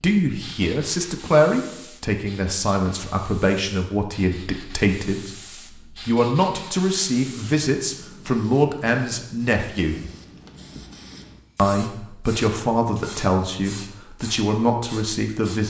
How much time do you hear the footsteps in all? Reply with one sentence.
The footsteps can't be heard in this clip.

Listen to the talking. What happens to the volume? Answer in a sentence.
The loudness of the talking stays about the same.